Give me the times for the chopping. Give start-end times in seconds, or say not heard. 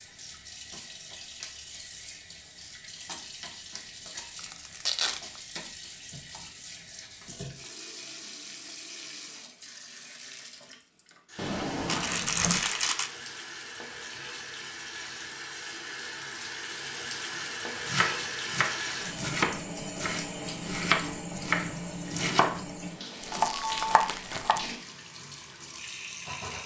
17.3-22.6, 23.3-24.6.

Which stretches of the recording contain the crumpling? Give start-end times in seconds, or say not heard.
4.3-5.4, 11.8-13.1, 23.2-24.6.